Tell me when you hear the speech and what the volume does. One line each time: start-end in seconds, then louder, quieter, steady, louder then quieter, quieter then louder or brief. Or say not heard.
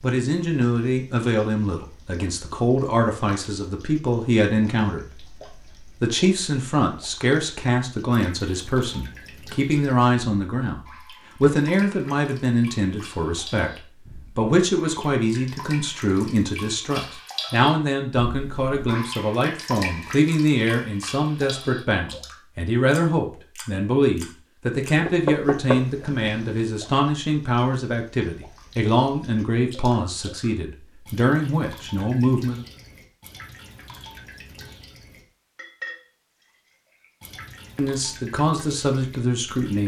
0.0-10.8 steady
11.4-32.6 steady
37.8-39.8 brief.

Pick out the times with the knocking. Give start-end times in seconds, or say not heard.
25.1-26.6.